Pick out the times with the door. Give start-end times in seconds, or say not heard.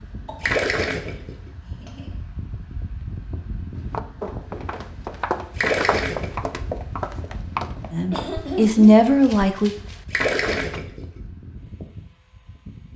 not heard.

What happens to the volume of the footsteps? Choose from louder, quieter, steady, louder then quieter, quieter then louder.
quieter.